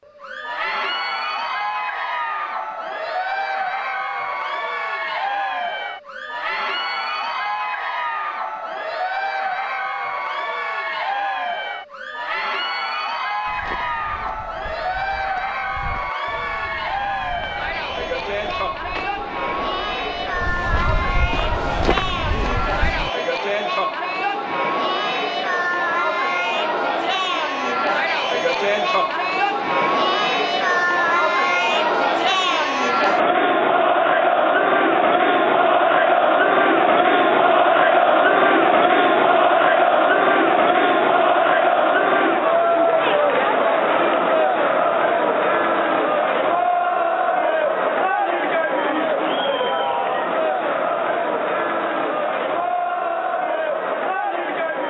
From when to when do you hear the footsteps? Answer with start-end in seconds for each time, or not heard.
13.4-23.1.